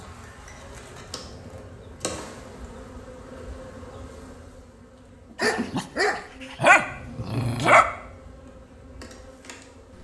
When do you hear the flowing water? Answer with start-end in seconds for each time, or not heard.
not heard.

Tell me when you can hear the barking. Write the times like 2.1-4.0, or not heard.
5.4-7.8.